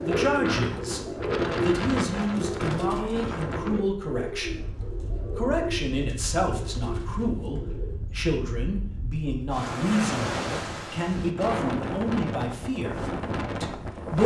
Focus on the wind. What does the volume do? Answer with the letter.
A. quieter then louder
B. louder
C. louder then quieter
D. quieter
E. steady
A.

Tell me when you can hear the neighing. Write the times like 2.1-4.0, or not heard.
not heard.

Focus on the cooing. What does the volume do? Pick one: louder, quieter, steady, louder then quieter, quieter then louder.
quieter.